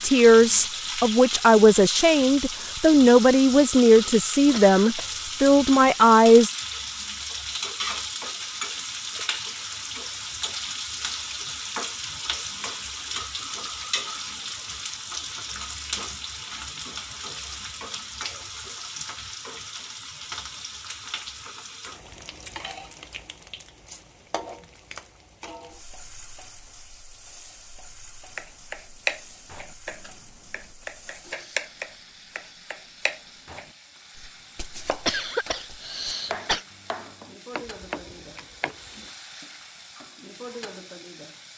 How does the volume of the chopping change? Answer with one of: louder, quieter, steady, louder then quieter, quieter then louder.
quieter.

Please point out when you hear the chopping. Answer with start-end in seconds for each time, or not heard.
28.4-39.1.